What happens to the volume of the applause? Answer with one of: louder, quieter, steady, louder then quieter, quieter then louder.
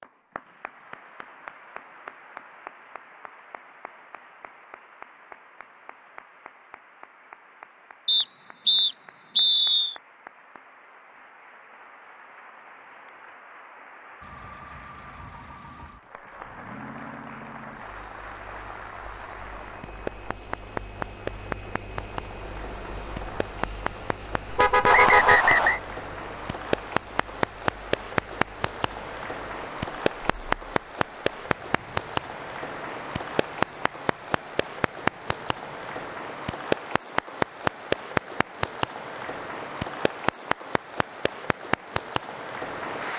louder.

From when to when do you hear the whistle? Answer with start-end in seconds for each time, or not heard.
8.1-9.9, 24.9-25.8.